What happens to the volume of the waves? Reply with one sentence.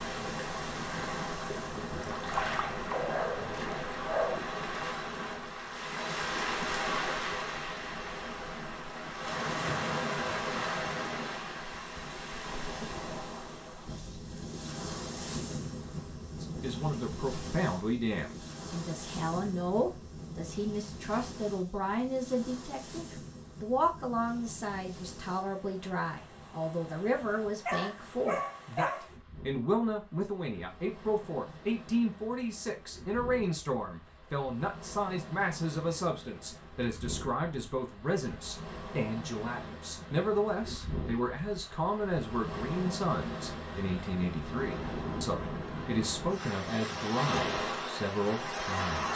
The loudness of the waves goes down, then up.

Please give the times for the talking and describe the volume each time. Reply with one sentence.
The talking can be heard from 16.4 to 49.1 s, at a steady volume.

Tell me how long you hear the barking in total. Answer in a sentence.
You can hear the barking for 3 seconds altogether.